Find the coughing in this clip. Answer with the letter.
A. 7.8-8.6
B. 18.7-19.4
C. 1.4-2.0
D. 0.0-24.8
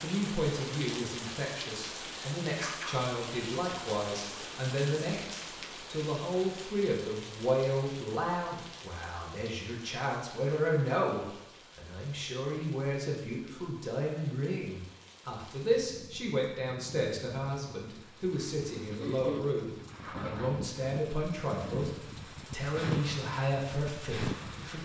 B.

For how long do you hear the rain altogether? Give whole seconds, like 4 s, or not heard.
25 s.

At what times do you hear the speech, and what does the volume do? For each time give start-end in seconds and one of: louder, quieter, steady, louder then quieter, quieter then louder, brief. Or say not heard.
0.0-24.8 steady.